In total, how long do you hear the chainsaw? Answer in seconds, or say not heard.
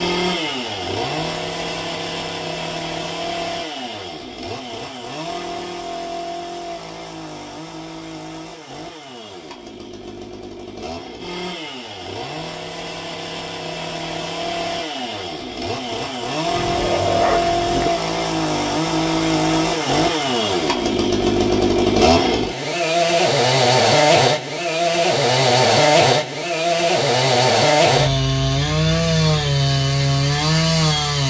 31 s.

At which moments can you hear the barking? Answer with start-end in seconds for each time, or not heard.
16.6-17.9.